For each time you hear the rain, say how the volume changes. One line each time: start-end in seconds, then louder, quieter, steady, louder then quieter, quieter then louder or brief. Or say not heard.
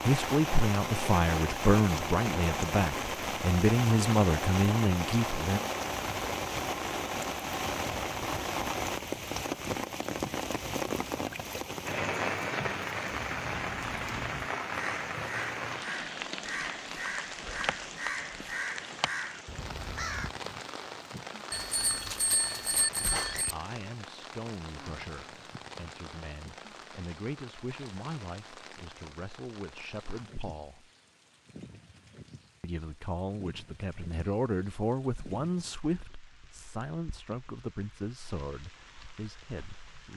0.0-40.1 quieter.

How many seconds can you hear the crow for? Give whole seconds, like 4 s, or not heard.
7 s.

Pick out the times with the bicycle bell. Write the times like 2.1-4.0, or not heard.
21.5-23.6.